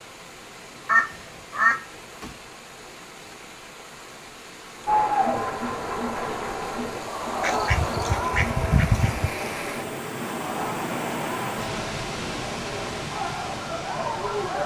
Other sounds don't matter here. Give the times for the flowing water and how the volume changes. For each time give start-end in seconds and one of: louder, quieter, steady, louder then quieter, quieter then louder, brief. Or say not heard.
0.0-14.6 louder.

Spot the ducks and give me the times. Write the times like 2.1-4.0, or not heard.
0.8-2.3, 7.4-9.3.